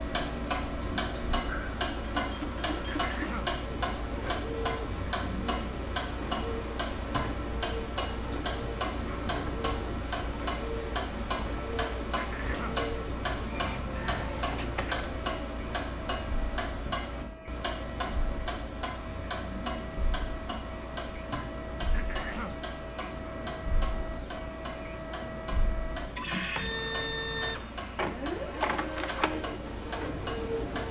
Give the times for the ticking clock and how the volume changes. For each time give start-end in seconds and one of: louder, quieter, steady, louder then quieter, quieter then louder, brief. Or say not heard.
0.0-30.8 quieter.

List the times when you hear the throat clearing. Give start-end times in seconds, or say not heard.
2.9-3.5, 12.2-12.8, 21.9-22.6.